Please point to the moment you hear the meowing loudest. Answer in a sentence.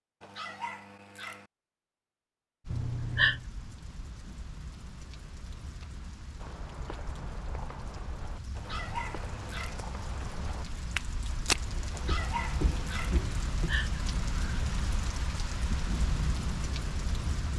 The volume of the meowing peaks at 3 seconds.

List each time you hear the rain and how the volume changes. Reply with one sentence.
The rain can be heard from 2.6 to 17.5 s, getting louder.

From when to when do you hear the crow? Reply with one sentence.
You can't hear the crow here.